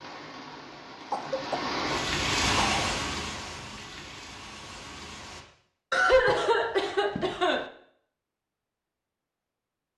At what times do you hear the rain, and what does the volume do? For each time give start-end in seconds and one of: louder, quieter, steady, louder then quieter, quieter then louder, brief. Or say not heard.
0.0-5.5 louder then quieter.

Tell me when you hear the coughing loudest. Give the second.
6 s.